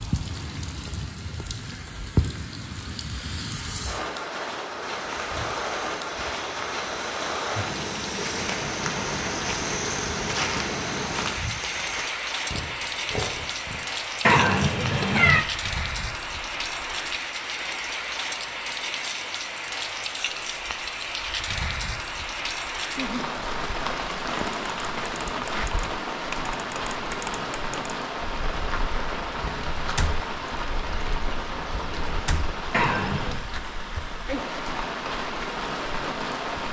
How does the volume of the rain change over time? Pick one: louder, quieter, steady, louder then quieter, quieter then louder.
steady.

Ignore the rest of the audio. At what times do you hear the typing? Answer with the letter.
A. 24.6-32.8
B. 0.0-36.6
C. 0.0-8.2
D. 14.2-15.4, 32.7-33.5
A.